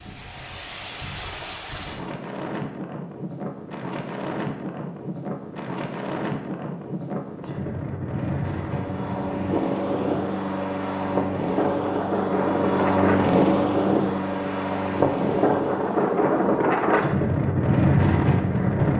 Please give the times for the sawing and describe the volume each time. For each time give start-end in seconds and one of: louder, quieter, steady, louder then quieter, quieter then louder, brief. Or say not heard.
not heard.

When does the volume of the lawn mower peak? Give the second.
13 s.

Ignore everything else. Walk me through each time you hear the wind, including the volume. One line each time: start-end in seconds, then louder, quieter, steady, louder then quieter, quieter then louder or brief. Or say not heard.
0.0-18.9 louder.